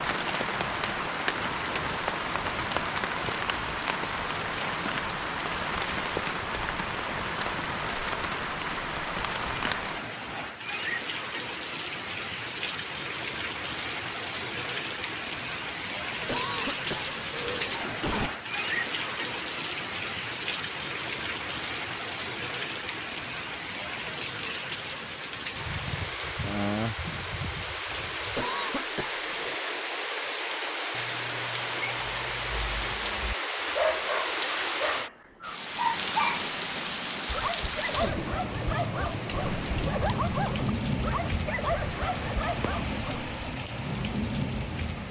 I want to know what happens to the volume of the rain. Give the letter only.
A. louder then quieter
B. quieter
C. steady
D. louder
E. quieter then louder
C.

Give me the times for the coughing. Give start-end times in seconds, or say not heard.
16.2-18.3, 28.4-29.6.